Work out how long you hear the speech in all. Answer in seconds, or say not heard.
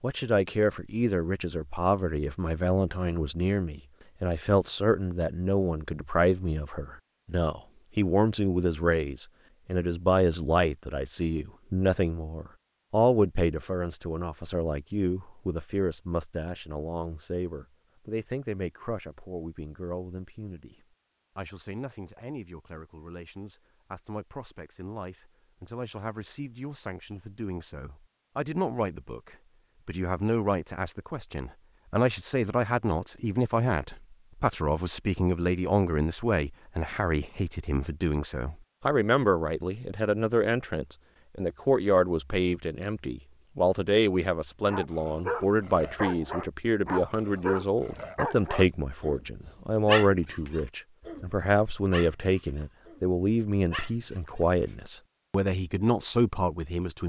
57 s.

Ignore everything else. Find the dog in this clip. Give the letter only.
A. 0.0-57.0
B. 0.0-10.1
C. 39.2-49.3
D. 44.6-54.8
D.